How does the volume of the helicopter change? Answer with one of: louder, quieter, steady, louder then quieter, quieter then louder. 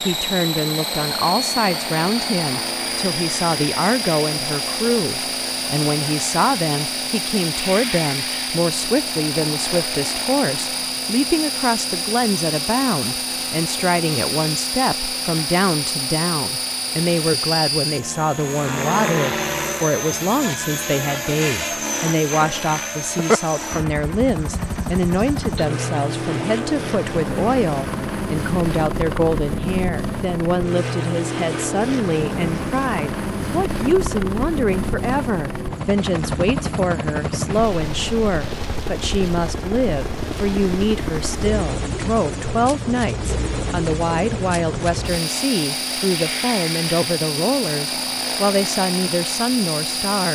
steady.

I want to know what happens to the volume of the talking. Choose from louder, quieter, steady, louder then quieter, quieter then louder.
steady.